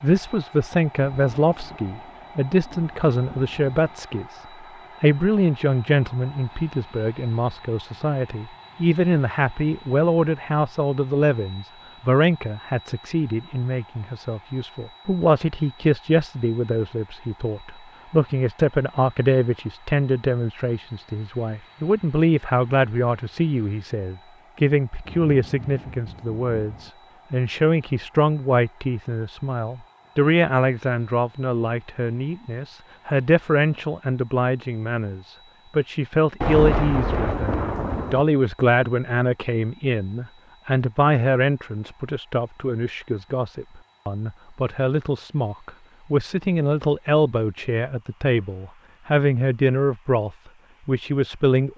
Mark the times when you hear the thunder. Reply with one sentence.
You can hear the thunder from 1.0 to 4.0 s, from 25.1 to 26.9 s and from 36.4 to 38.2 s.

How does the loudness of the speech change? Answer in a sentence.
The volume of the speech stays about the same.